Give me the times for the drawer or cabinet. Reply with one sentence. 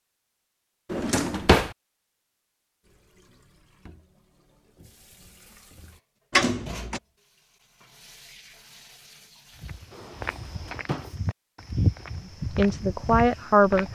The drawer or cabinet can be heard from 0.9 to 1.8 s, from 6.3 to 7.0 s and from 9.9 to 11.2 s.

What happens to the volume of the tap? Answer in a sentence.
The volume of the tap goes up, then down.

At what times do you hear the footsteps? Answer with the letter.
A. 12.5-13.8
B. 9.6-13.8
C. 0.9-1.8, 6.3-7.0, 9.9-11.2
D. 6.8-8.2
B.